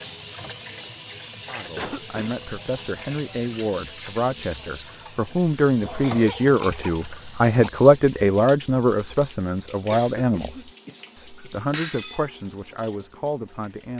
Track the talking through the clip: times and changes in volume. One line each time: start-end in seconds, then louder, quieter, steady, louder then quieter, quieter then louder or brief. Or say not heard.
1.4-13.9 louder then quieter.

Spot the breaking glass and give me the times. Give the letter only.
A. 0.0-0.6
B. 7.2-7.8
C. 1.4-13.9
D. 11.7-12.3
D.